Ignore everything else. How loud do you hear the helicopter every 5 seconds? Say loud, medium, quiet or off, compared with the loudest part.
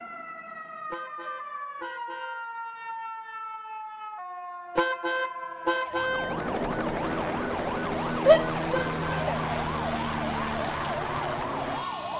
off, loud, loud.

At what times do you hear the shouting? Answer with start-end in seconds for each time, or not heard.
8.2-9.4.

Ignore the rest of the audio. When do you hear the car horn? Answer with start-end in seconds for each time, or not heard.
0.9-2.5, 4.8-6.3, 8.8-9.3.